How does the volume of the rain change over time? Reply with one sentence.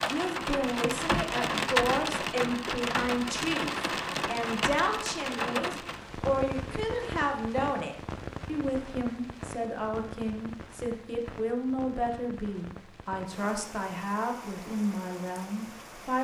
The volume of the rain goes down.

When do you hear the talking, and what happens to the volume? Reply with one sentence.
The talking can be heard from 0.0 to 16.1 s, at a steady volume.